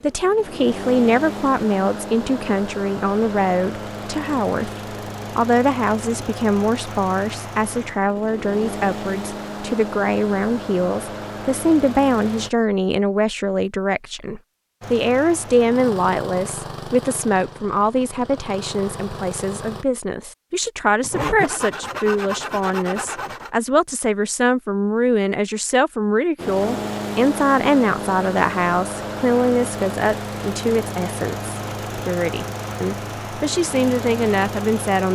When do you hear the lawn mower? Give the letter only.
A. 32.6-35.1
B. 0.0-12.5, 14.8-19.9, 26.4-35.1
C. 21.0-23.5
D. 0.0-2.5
B.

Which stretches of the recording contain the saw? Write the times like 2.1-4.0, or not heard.
21.0-23.5.